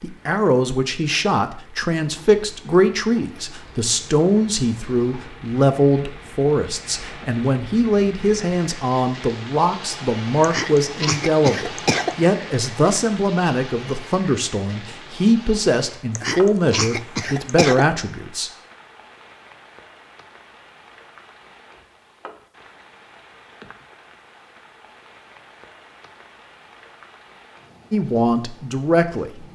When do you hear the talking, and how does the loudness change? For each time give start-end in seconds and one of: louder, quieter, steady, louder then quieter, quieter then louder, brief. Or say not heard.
0.0-18.5 steady
27.9-29.3 brief.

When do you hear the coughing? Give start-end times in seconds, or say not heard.
10.4-12.2, 16.1-17.9.